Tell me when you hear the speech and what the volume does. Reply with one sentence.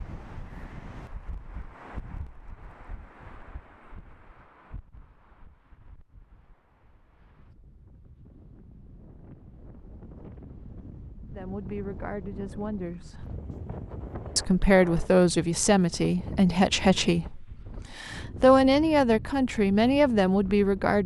The speech can be heard briefly from 11.3 to 13.2 s; and from 14.3 to 21.0 s, getting quieter then louder.